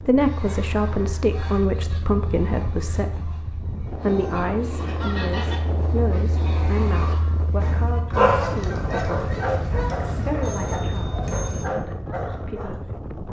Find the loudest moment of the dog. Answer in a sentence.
The volume of the dog peaks at 8 seconds.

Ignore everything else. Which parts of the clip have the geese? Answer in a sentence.
The geese can be heard from 0.1 to 11.7 s.